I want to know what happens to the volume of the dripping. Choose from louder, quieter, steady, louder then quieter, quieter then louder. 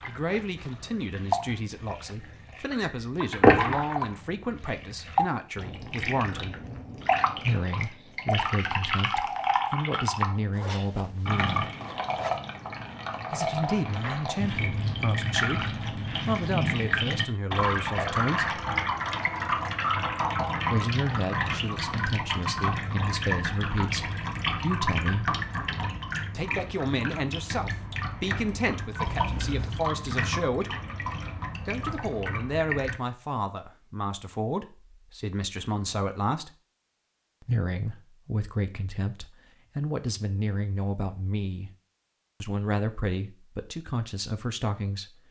quieter.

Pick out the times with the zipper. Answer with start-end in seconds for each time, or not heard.
10.5-12.4, 29.1-29.9.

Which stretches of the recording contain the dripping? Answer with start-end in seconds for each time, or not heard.
0.0-33.0.